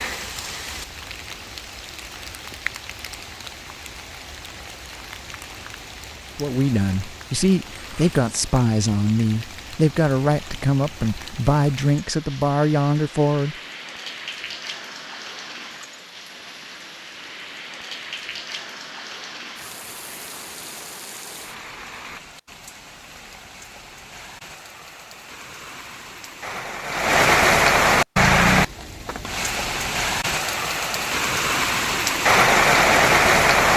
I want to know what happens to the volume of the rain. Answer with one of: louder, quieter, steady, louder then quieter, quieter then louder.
louder.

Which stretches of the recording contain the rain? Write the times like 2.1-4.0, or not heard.
0.0-33.7.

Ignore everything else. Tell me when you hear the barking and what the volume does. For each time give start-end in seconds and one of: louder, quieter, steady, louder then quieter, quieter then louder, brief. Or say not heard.
not heard.